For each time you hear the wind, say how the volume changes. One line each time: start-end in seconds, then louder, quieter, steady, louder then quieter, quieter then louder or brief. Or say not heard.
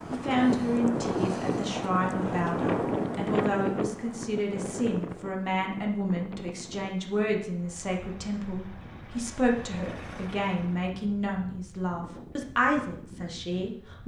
0.0-14.0 quieter.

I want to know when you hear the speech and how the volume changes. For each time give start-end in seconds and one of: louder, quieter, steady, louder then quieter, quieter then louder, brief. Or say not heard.
0.1-14.0 steady.